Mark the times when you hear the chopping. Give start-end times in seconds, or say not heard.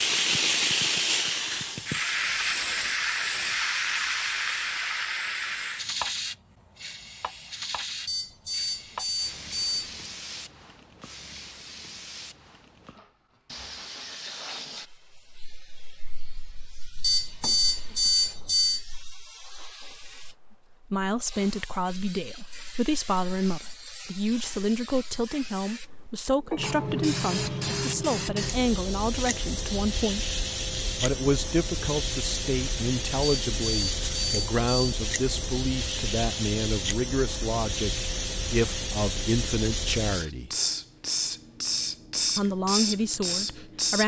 not heard.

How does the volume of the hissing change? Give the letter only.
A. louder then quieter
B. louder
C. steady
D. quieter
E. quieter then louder
E.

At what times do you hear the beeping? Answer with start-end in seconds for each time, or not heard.
8.1-10.0, 17.0-18.9, 33.2-35.0.